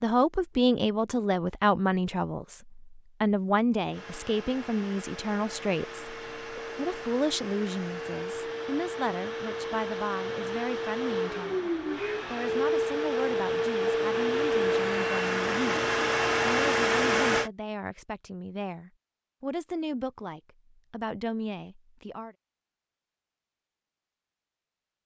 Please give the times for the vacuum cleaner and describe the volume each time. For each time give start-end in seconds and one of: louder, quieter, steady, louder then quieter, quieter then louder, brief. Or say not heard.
3.9-17.5 louder.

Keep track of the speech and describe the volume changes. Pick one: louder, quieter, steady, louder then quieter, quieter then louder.
quieter.